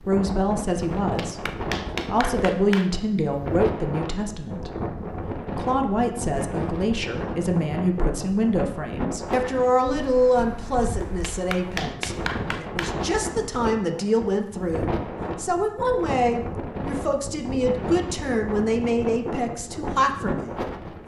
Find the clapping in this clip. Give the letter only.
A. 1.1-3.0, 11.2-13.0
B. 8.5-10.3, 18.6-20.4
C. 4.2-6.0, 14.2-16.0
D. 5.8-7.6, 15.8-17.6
A.